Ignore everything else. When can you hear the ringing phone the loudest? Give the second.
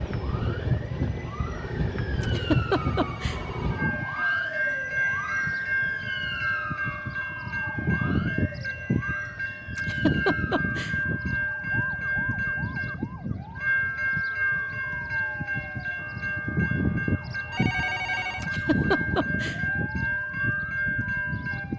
18 s.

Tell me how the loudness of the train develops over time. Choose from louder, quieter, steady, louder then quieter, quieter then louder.
steady.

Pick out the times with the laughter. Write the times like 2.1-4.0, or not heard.
2.2-3.4, 9.8-10.9, 18.4-19.6.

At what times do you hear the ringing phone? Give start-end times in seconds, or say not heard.
2.7-3.9, 17.5-18.5.